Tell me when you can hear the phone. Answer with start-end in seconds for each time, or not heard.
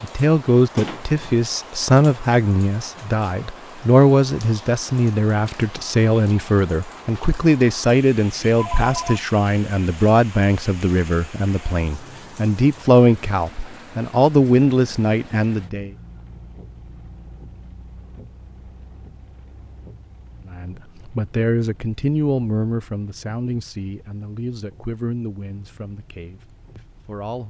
8.5-9.2.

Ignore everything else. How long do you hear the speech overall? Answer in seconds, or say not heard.
23 s.